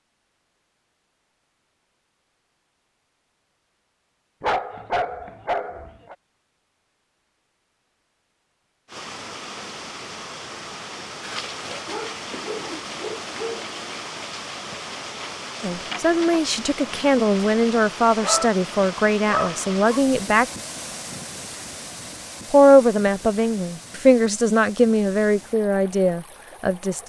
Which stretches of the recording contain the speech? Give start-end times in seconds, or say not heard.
15.6-20.4, 22.5-27.0.